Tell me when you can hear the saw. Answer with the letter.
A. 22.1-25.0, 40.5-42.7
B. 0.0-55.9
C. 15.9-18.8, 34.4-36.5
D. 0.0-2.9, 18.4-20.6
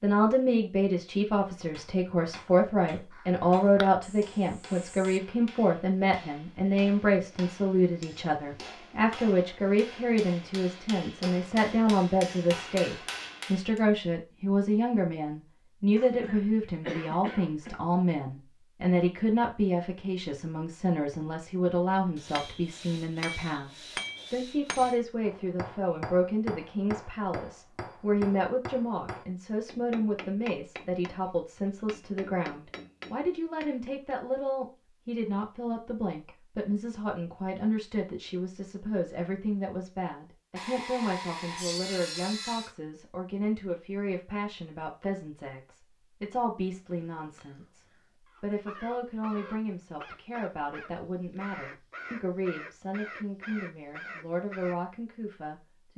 A.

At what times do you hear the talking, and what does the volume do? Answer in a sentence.
The talking can be heard from 0.0 to 55.9 s, getting quieter.